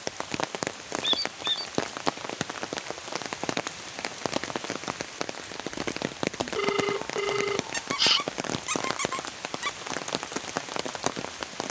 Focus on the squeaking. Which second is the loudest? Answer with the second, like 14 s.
1 s.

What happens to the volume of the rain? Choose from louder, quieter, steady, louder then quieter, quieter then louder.
steady.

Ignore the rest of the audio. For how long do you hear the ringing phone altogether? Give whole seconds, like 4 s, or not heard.
2 s.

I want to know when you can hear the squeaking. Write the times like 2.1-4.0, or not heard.
1.0-1.6, 7.7-9.7.